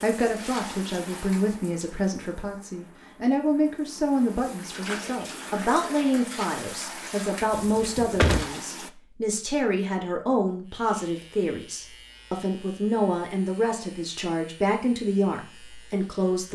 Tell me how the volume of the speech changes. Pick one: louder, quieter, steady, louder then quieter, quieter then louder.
steady.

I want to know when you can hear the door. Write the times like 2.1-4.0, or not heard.
7.5-8.4.